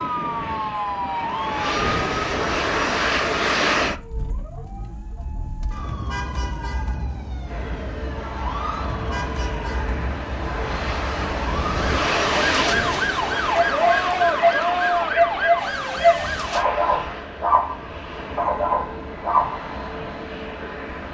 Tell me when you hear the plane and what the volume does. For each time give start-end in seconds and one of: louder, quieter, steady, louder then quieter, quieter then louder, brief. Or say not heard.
0.0-4.0 louder
7.5-21.0 louder then quieter.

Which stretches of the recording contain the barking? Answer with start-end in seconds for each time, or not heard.
13.4-20.1.